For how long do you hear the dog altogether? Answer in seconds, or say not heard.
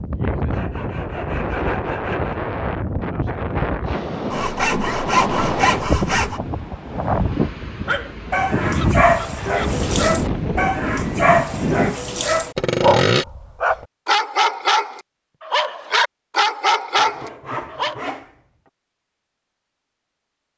10 s.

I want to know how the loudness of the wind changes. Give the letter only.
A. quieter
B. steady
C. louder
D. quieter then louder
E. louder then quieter
B.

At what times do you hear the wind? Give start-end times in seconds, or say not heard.
0.0-11.9.